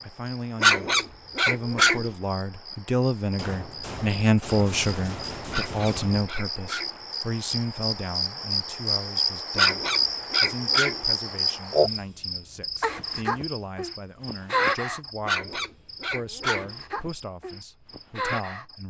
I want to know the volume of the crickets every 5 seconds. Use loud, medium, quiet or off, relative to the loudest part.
quiet, loud, loud, medium.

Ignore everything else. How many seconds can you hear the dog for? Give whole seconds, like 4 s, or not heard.
6 s.